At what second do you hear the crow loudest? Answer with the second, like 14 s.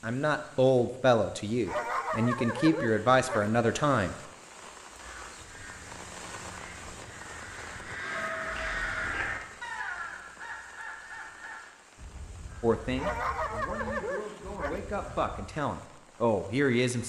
9 s.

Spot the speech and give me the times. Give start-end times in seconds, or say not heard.
0.0-4.2, 12.6-17.0.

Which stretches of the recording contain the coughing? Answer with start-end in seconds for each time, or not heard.
8.6-9.3.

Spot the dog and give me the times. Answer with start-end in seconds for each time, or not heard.
1.6-3.5, 12.9-14.8.